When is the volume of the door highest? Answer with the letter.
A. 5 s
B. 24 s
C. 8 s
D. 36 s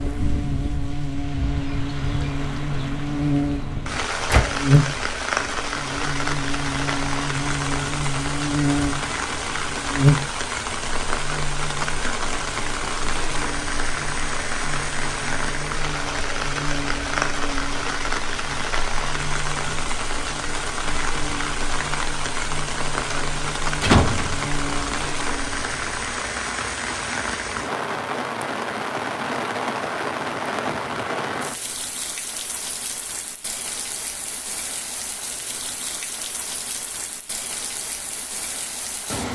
B.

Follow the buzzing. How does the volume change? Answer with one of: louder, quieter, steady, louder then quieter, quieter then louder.
quieter.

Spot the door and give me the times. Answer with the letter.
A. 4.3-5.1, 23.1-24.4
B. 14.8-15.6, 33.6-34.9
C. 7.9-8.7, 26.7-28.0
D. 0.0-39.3
A.